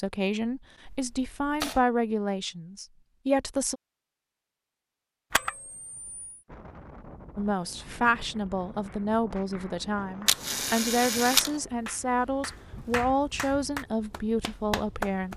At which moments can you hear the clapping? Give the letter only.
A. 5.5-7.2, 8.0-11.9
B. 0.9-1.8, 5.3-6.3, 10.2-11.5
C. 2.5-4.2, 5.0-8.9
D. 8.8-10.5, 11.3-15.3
D.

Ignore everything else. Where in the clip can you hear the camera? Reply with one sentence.
The camera can be heard from 0.9 to 1.8 s, from 5.3 to 6.3 s and from 10.2 to 11.5 s.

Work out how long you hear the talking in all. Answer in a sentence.
The talking can be heard for 12 seconds in total.